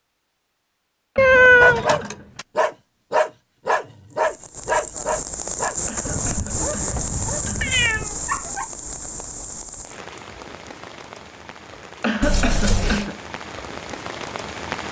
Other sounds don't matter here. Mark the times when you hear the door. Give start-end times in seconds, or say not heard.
not heard.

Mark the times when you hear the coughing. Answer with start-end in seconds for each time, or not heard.
1.1-2.4, 5.8-7.9, 12.0-13.2.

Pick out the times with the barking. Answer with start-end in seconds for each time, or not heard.
1.2-8.7.